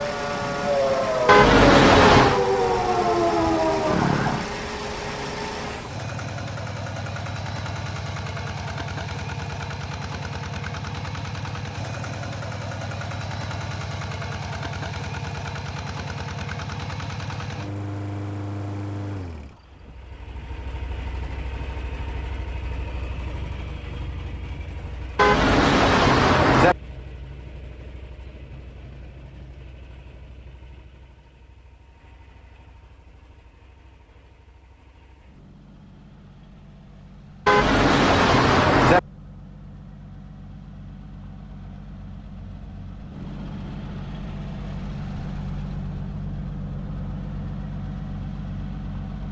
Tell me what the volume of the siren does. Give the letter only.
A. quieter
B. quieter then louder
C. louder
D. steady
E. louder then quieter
D.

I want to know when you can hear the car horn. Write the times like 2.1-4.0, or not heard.
1.2-2.4, 25.1-26.8, 37.5-39.0.